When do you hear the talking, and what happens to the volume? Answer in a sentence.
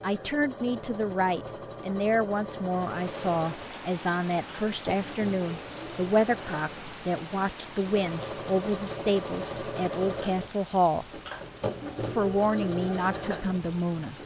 You can hear the talking from 0.0 to 11.1 s, at a steady volume; and briefly from 12.0 to 14.2 s.